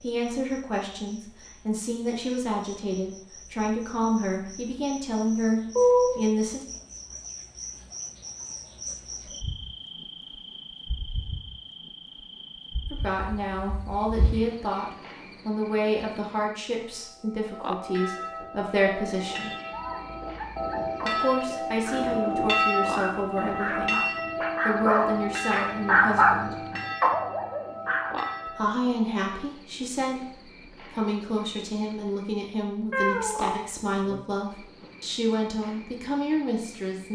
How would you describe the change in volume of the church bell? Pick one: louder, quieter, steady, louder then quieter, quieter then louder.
louder then quieter.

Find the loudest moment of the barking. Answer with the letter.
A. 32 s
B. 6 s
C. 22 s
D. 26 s
D.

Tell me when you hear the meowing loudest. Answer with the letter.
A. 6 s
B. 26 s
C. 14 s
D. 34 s
A.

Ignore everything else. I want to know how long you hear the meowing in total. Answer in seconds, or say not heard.
3 s.